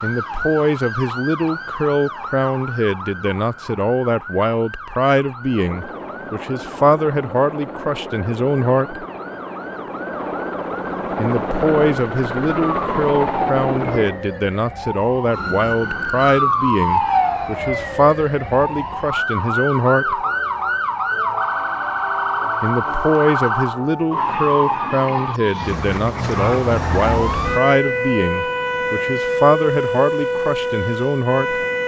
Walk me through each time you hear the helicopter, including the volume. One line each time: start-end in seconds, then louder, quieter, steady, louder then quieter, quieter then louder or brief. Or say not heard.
5.4-14.2 louder.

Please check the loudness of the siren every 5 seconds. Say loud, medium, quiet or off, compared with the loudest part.
medium, quiet, medium, loud, loud, loud, loud.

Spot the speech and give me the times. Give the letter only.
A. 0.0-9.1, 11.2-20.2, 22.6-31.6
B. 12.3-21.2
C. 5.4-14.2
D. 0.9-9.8
A.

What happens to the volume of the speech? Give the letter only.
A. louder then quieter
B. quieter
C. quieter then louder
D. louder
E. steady
E.